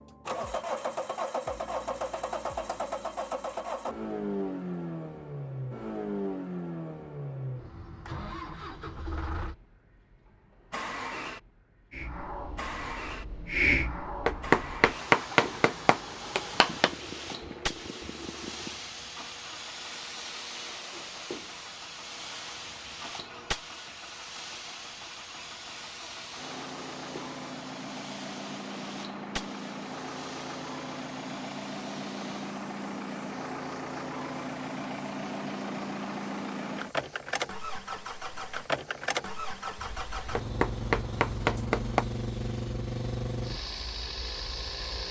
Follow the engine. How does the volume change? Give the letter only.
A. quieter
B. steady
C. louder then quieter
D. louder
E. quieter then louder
E.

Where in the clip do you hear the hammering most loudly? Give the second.
15 s.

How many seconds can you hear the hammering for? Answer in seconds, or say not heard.
4 s.